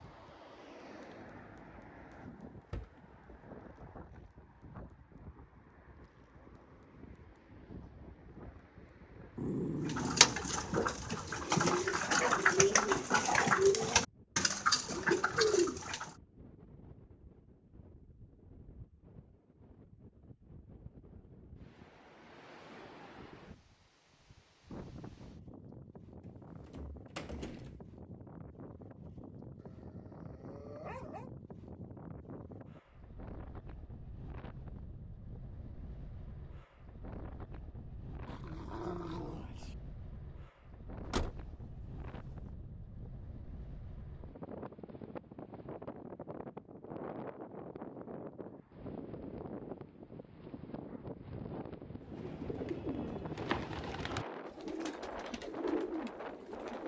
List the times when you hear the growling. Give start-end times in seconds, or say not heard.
9.3-11.1, 29.6-31.3, 38.2-39.8.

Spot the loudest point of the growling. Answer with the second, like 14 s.
10 s.